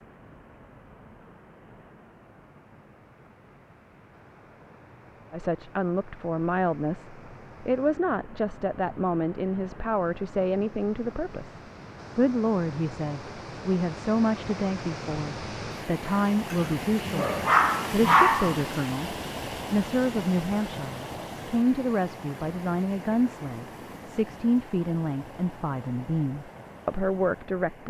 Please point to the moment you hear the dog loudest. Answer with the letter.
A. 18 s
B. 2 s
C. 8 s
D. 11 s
A.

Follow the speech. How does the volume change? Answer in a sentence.
The loudness of the speech stays about the same.